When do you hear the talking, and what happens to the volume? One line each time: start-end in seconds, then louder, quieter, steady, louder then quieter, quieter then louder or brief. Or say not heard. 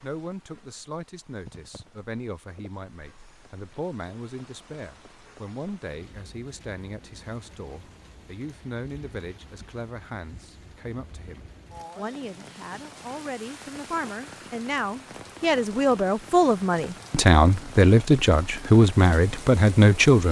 0.0-20.2 louder.